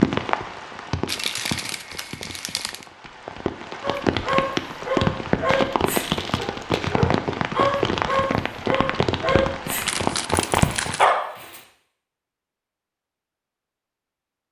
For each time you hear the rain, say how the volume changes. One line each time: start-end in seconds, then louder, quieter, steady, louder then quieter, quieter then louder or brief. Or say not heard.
0.0-11.1 louder.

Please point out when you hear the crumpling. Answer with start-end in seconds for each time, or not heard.
1.1-2.9, 5.5-7.0, 9.8-11.1.